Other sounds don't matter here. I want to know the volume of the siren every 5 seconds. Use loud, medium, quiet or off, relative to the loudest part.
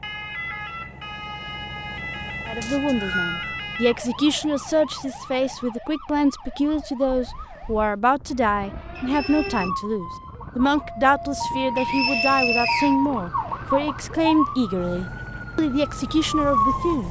medium, medium, loud, loud.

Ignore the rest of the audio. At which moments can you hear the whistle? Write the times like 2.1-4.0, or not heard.
2.6-3.5, 8.9-9.7, 11.8-12.9.